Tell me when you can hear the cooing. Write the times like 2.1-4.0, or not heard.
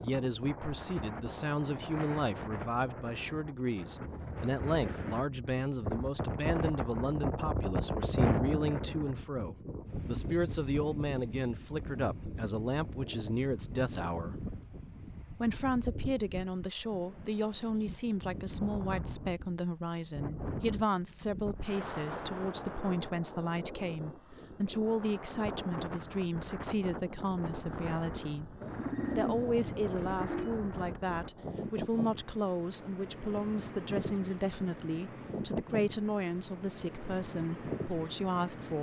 28.6-30.6.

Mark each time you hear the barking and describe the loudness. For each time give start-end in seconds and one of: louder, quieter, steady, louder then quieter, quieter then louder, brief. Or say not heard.
not heard.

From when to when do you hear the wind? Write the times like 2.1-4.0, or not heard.
0.0-38.7.